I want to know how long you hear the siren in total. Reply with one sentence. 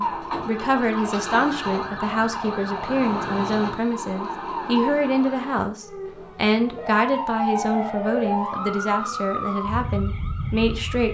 You can hear the siren for 11 seconds altogether.